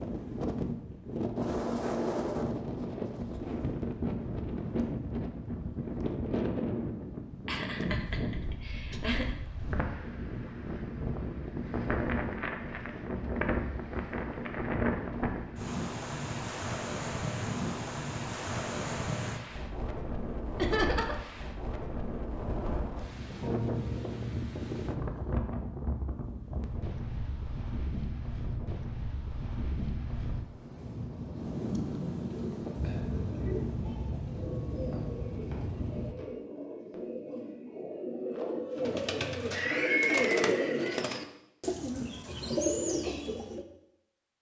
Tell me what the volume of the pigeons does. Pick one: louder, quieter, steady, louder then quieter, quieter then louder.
louder.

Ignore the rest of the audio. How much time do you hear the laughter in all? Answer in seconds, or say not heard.
4 s.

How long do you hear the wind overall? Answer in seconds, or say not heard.
36 s.